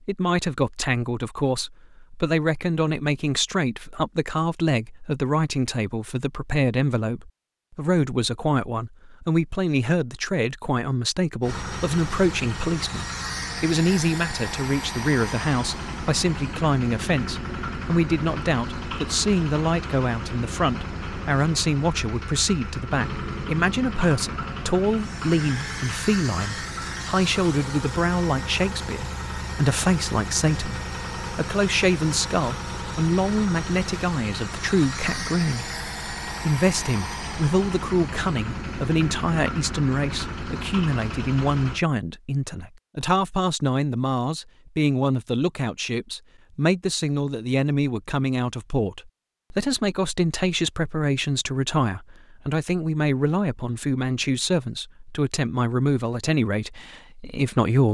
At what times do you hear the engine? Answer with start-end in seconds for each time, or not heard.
11.4-41.9.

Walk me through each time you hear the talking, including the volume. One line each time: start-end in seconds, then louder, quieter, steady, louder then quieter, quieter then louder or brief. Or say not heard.
0.1-57.8 steady.